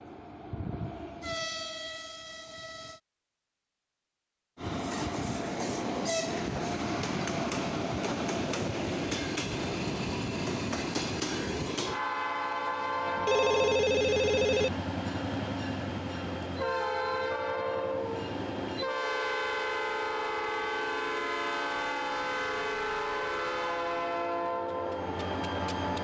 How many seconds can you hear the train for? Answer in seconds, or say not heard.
24 s.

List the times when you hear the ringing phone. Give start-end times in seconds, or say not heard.
13.2-14.7.